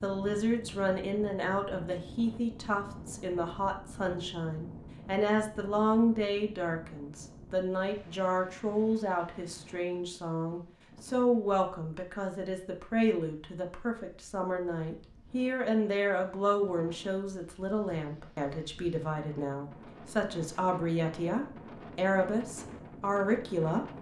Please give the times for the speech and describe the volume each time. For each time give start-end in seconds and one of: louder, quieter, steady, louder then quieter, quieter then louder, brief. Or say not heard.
0.0-23.9 steady.